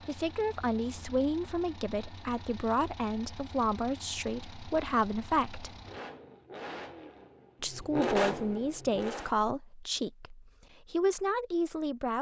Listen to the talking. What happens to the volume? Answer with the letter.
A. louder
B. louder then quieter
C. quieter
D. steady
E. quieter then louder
D.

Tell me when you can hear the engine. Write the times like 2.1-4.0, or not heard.
0.0-9.3.